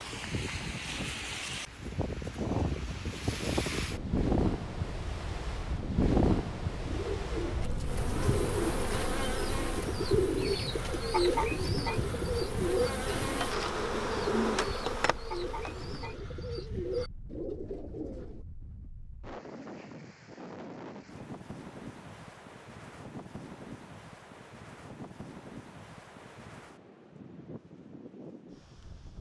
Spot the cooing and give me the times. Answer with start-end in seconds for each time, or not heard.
6.8-18.4.